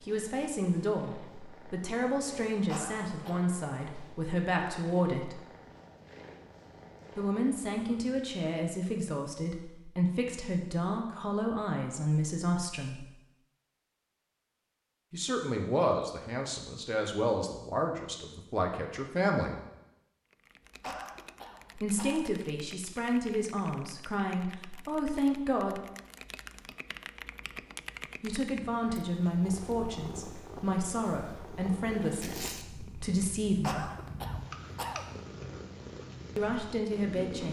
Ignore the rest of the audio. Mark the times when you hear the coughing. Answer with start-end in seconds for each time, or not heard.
2.6-3.5, 20.8-22.2, 33.6-35.0.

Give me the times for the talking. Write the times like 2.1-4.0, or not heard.
0.0-5.4, 7.2-13.1, 15.1-19.6, 21.8-25.8, 28.2-33.9, 36.4-37.4.